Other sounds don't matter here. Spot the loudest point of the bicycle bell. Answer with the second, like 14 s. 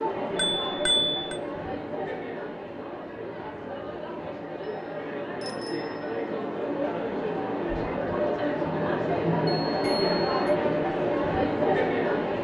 1 s.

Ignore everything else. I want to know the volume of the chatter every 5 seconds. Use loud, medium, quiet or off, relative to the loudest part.
medium, loud, loud.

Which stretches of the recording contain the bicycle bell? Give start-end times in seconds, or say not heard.
0.3-1.4, 5.4-6.0, 9.7-10.6.